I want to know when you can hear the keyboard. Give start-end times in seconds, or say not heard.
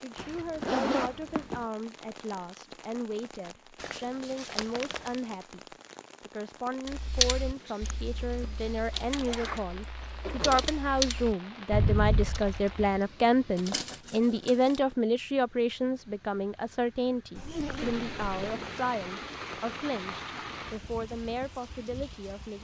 6.8-12.8.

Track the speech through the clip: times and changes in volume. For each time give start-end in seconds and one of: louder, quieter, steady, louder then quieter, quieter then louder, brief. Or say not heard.
0.0-22.5 louder then quieter.